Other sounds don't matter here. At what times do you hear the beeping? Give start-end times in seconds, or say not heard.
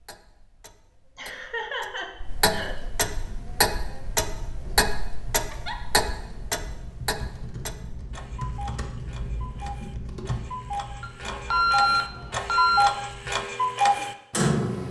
11.0-12.9.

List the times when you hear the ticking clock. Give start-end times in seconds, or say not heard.
0.0-14.8.